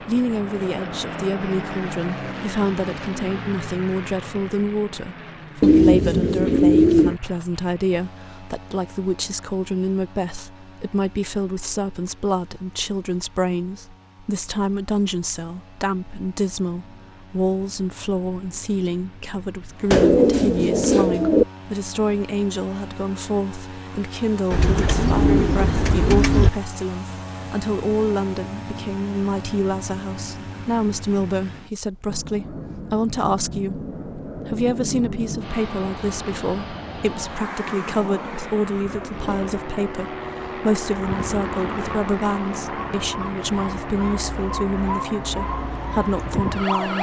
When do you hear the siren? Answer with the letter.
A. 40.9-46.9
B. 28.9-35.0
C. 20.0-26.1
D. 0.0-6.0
A.